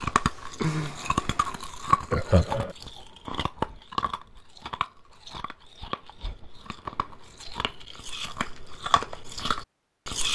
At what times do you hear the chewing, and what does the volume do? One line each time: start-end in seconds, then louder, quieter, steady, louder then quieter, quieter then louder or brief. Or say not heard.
0.0-10.2 quieter then louder.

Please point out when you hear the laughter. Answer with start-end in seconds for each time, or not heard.
2.1-2.8.